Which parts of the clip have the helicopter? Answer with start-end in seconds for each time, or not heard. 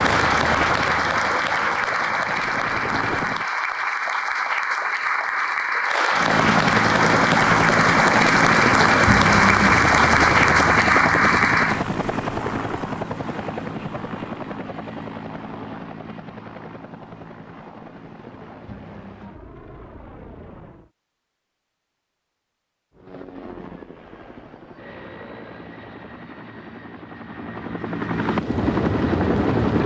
0.0-3.5, 6.1-20.9, 22.9-29.8.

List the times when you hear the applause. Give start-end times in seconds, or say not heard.
0.0-11.8.